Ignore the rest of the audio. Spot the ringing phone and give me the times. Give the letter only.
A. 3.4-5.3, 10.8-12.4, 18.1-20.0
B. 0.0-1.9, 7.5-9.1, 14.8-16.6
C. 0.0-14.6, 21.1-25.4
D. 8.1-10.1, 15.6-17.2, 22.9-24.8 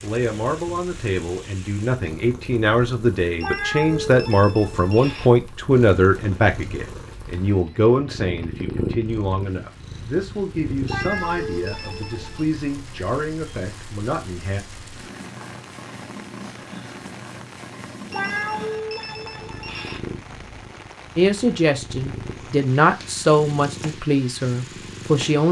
A.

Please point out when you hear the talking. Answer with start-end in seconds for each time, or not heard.
0.0-14.6, 21.1-25.4.